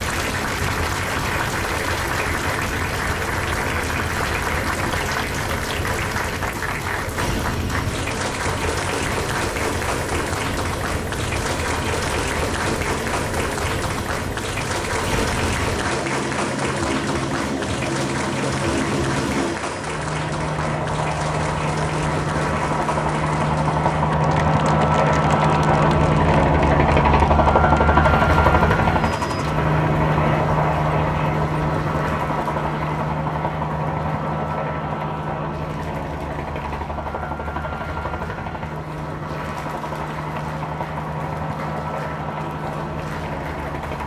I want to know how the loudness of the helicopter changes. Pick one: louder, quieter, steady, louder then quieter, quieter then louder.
louder then quieter.